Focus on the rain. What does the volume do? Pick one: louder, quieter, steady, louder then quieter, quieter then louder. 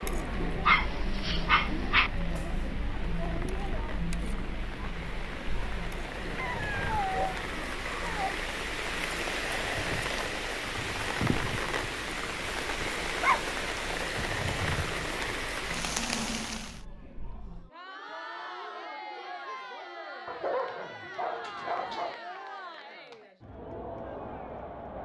louder.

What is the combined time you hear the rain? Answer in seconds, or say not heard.
17 s.